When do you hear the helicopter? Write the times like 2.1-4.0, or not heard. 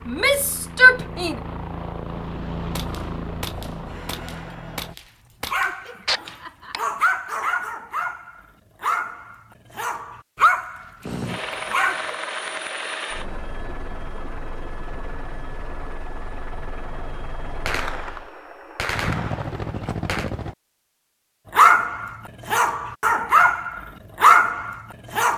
0.0-5.0, 11.0-20.6.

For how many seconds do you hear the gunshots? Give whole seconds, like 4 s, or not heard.
7 s.